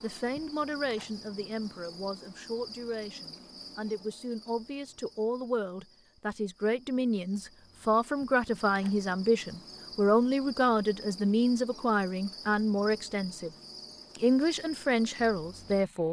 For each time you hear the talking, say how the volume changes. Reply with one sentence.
The talking can be heard from 0.0 to 13.5 s, getting louder; and briefly from 14.2 to 16.0 s.